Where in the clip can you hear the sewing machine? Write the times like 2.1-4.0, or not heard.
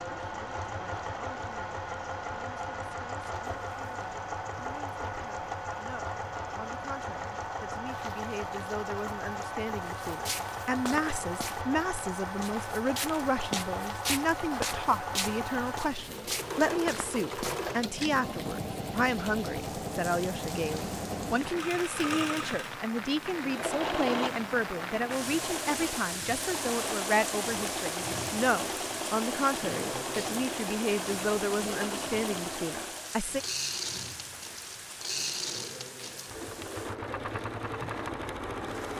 0.0-38.9.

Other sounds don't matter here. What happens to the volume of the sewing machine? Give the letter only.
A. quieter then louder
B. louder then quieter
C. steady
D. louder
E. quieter
C.